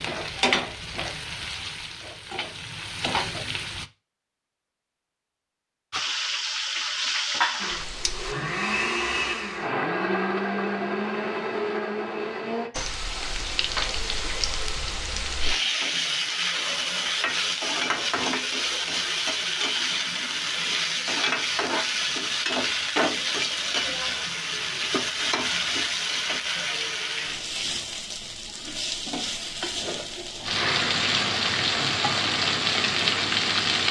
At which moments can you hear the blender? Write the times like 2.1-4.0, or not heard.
7.6-12.7, 30.6-33.8.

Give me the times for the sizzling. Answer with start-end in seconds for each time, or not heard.
0.0-3.9, 5.9-8.3, 12.7-33.8.